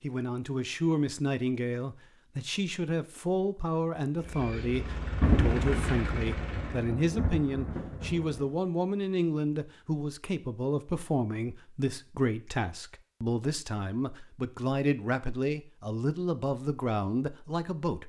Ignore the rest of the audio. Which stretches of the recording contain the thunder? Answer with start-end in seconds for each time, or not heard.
5.2-8.4.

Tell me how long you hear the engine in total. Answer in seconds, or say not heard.
3 s.